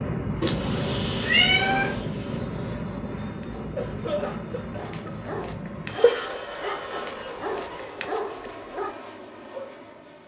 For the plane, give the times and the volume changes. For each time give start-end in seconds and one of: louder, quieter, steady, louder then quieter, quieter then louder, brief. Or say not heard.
0.0-10.2 quieter.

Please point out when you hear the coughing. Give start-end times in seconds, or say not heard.
3.6-5.3.